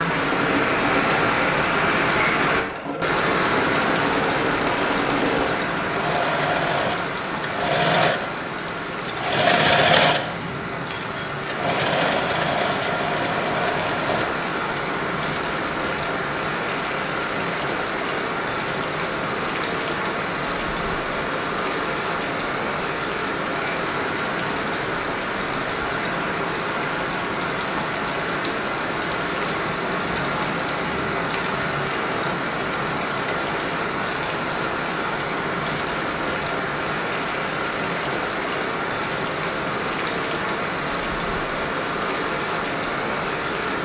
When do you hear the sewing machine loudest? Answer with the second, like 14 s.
10 s.